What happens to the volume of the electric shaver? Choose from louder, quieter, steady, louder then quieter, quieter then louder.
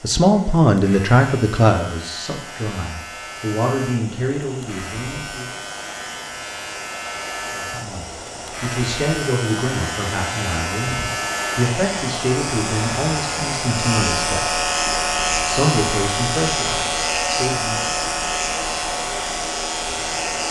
louder.